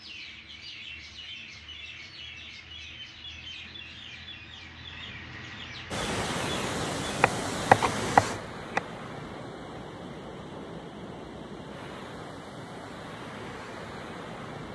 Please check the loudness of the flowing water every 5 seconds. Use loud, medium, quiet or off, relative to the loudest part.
off, loud, medium.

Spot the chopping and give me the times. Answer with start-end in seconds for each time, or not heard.
7.0-8.8.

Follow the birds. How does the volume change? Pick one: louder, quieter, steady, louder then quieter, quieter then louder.
steady.